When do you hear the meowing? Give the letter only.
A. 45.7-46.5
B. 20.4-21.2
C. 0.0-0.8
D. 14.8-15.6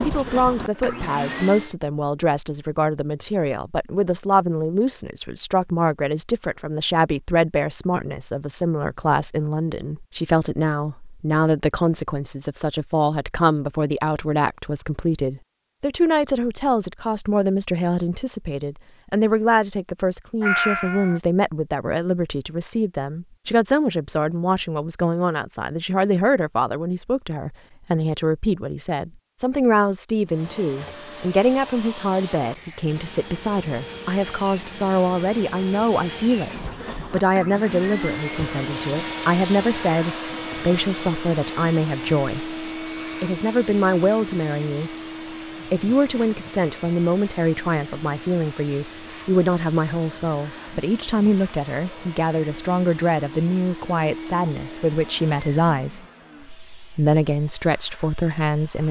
B.